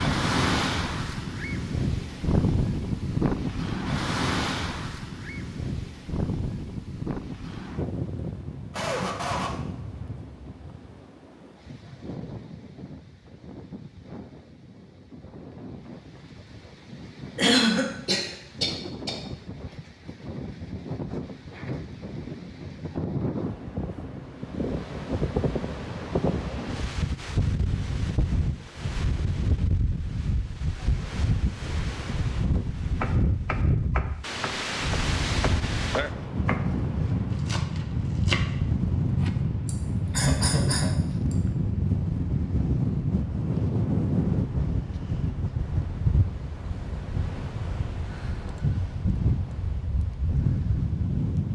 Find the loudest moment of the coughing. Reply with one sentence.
The volume of the coughing peaks at 18 seconds.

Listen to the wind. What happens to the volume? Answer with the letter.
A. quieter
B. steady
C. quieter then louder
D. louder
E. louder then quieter
C.